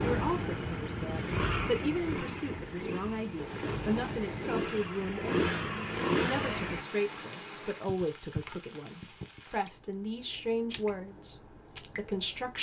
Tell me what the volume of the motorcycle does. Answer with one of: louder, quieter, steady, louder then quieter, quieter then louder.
quieter then louder.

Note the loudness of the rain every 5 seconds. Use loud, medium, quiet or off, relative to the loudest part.
loud, medium, medium.